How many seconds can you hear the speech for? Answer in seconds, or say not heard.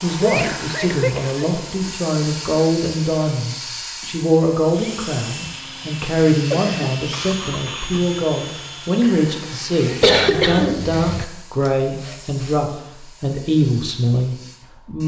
15 s.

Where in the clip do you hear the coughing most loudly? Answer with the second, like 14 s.
10 s.